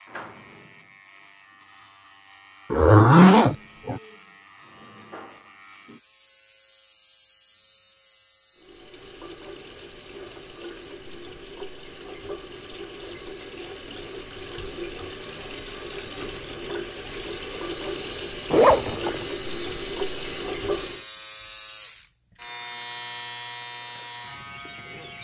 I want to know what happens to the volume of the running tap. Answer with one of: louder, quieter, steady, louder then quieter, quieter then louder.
louder.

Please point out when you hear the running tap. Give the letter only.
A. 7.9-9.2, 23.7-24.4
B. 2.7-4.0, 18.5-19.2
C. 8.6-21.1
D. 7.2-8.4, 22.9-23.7
C.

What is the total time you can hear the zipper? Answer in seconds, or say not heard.
2 s.